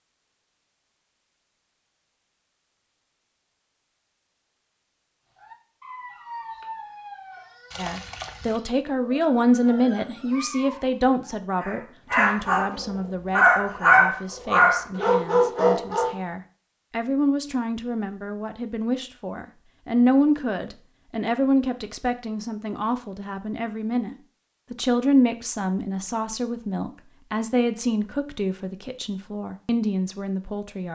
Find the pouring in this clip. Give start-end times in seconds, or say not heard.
7.7-8.6.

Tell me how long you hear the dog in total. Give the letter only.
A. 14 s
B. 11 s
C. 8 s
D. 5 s
B.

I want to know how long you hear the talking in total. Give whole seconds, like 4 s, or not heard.
23 s.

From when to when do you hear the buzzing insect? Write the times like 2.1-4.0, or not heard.
not heard.